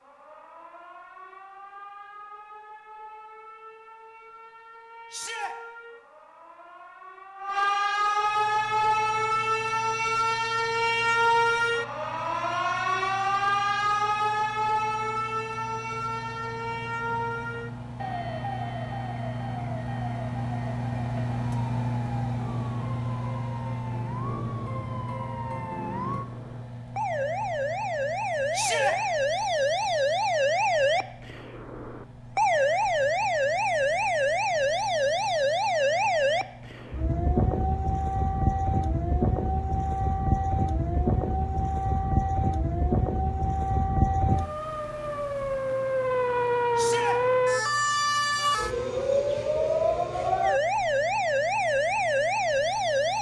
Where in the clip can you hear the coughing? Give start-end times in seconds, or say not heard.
not heard.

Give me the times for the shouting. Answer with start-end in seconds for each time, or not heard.
5.1-5.5, 28.5-28.9, 46.8-47.2.